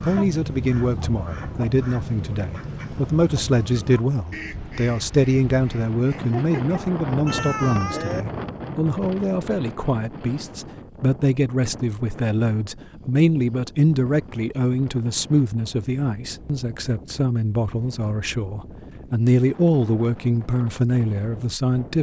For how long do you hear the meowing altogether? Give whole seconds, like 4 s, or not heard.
2 s.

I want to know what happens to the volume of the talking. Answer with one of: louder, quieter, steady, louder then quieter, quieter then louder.
steady.